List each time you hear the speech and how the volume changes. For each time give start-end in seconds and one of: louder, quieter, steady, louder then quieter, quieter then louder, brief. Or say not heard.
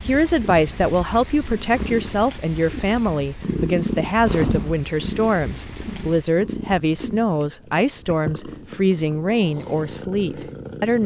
0.0-11.0 steady.